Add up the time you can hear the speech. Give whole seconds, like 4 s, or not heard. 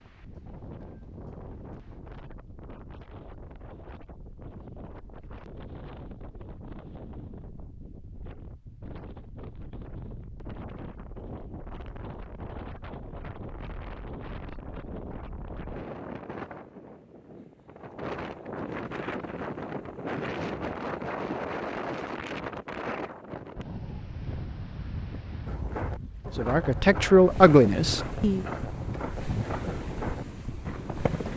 2 s.